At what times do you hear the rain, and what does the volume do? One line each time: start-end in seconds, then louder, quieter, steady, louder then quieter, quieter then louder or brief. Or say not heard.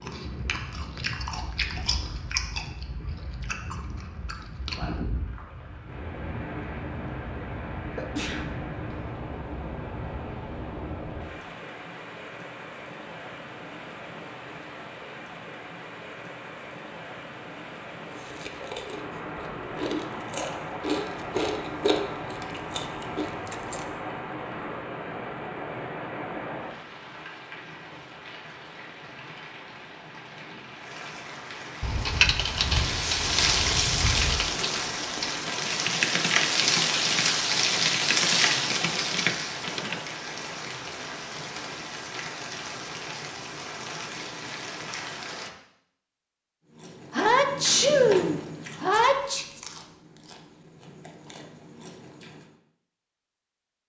0.0-45.5 louder.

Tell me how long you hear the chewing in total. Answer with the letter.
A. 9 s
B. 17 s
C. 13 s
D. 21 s
B.